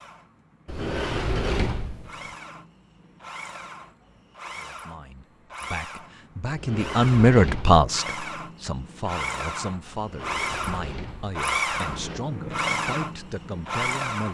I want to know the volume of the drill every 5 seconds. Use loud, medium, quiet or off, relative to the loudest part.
quiet, medium, loud.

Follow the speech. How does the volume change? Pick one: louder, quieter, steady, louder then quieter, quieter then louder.
louder then quieter.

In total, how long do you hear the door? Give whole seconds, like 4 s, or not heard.
5 s.